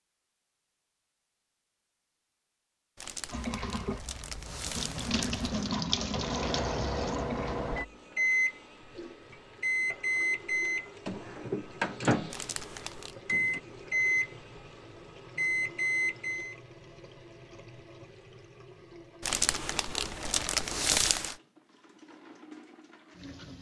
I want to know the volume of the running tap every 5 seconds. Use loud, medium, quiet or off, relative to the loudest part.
loud, loud, quiet, quiet, quiet.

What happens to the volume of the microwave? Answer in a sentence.
The loudness of the microwave stays about the same.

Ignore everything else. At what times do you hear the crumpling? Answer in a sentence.
The crumpling can be heard from 3.0 to 5.7 s, from 12.3 to 13.2 s and from 19.2 to 21.4 s.